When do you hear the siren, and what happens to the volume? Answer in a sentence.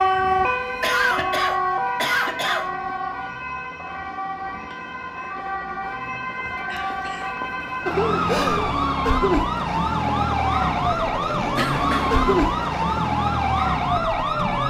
The siren can be heard from 0.0 to 14.6 s, getting quieter then louder.